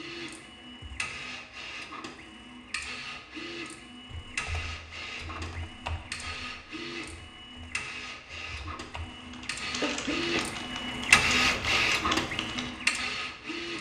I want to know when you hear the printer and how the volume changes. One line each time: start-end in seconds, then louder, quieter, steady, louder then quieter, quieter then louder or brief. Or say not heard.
0.0-13.7 louder.